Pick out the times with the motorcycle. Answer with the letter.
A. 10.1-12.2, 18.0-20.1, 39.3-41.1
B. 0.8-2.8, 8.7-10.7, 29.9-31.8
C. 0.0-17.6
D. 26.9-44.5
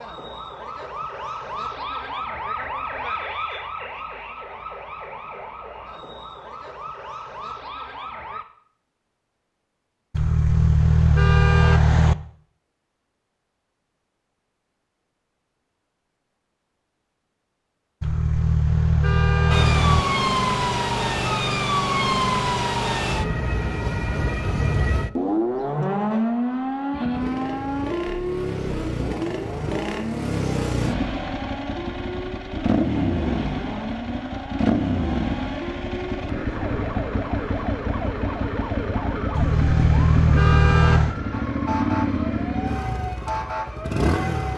D.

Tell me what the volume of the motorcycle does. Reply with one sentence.
The loudness of the motorcycle stays about the same.